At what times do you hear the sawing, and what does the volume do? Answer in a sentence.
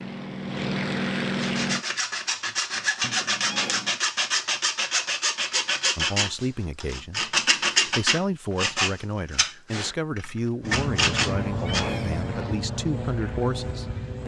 You can hear the sawing from 1.4 to 11.8 s, at a steady volume.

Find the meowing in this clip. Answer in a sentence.
The meowing can be heard from 3.0 to 4.0 s and from 11.5 to 12.3 s.